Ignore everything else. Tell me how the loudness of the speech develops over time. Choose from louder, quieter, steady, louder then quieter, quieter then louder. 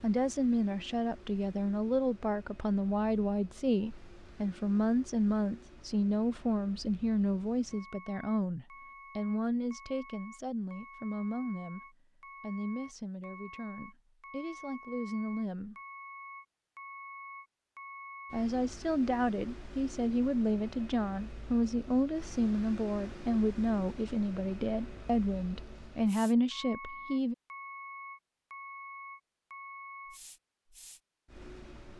quieter then louder.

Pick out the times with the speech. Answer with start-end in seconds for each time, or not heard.
0.0-15.8, 18.3-27.4.